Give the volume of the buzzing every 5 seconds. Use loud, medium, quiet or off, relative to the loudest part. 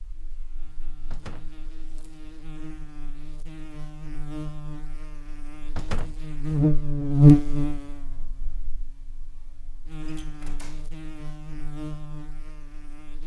quiet, loud, quiet.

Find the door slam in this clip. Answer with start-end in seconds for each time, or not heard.
1.1-1.6, 5.8-6.2, 10.1-10.9.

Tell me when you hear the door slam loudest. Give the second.
6 s.